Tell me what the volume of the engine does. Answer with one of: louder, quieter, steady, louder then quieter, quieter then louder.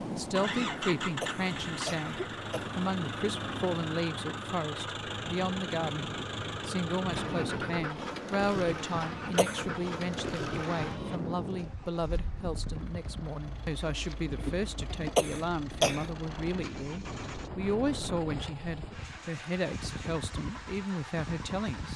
quieter.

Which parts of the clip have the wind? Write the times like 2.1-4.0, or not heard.
0.0-21.9.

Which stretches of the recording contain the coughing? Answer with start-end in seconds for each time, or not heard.
1.2-2.6, 9.1-9.7, 14.9-16.1.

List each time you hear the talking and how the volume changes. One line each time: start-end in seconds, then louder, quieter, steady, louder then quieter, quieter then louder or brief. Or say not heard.
0.0-21.9 steady.